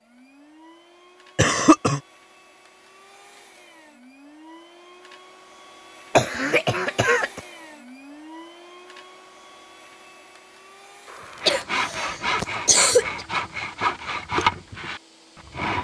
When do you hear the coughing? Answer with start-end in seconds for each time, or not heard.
1.4-2.0, 6.2-7.4, 11.4-13.2.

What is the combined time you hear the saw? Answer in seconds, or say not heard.
4 s.